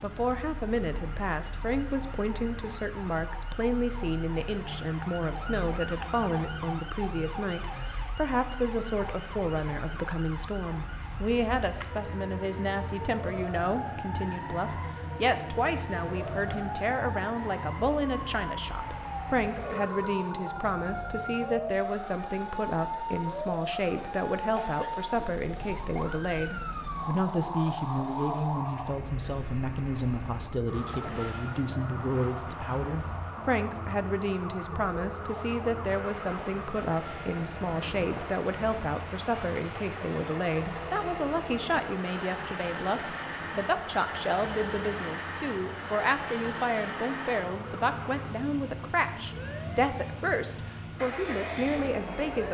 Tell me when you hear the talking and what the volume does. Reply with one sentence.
You can hear the talking from 0.0 to 52.5 s, at a steady volume.